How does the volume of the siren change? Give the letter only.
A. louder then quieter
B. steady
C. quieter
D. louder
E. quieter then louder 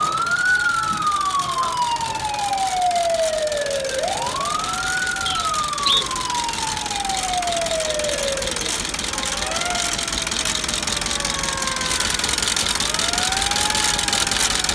C.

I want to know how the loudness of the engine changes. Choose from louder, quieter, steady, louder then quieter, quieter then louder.
louder.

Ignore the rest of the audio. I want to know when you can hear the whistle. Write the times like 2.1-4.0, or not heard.
5.2-6.0.